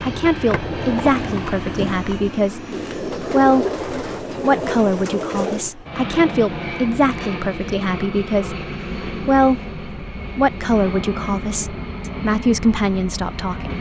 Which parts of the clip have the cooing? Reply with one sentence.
You can hear the cooing from 2.7 to 5.7 s.